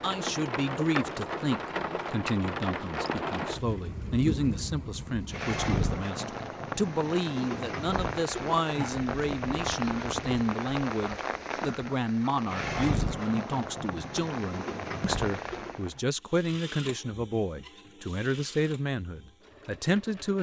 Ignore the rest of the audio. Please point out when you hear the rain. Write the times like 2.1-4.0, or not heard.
0.0-16.0.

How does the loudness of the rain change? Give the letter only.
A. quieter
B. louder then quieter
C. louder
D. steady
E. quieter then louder
D.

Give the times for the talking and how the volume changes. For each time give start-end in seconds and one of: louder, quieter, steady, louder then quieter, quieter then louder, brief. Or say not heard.
0.0-20.3 steady.